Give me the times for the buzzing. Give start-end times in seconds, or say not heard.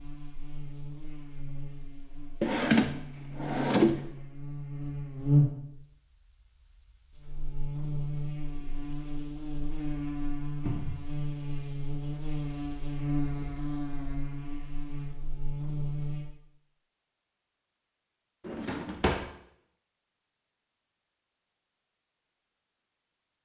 0.0-16.2.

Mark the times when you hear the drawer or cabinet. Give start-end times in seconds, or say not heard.
2.4-4.0, 10.7-11.1, 18.4-19.2.